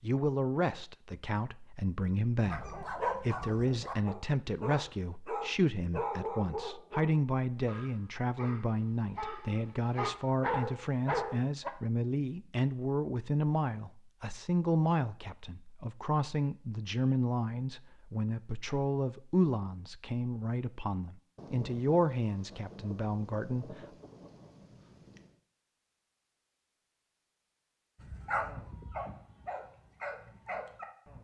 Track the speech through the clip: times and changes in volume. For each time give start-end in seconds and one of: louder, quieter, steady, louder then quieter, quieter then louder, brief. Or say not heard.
0.0-23.9 steady.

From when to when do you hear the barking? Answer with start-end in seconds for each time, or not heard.
2.5-11.7, 28.0-31.1.